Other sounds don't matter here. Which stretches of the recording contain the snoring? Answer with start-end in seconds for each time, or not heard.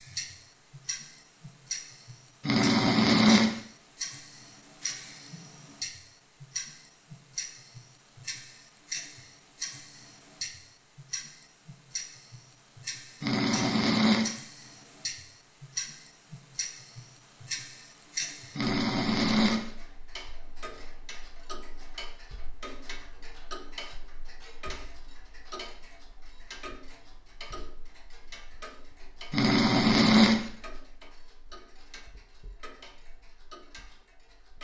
2.5-3.6, 13.2-14.3, 18.6-19.7, 29.3-30.4.